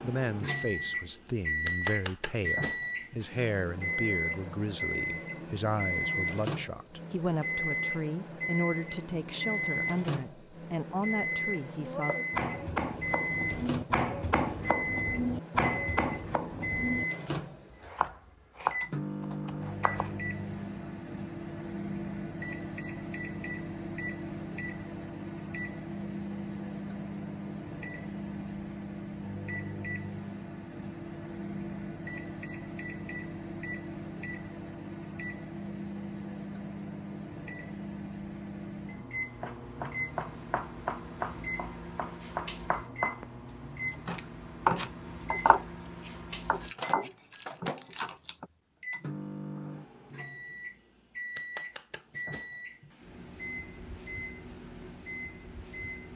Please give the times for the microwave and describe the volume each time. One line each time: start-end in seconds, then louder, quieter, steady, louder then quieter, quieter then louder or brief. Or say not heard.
0.0-56.1 quieter.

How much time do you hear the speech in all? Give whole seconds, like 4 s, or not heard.
12 s.